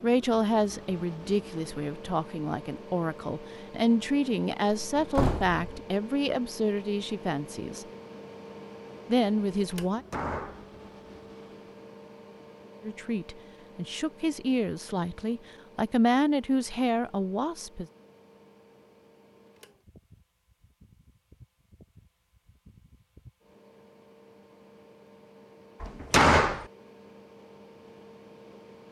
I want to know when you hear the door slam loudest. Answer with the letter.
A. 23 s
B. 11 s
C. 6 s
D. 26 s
D.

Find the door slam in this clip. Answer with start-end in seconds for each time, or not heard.
5.0-5.8, 9.9-10.7, 25.8-26.6.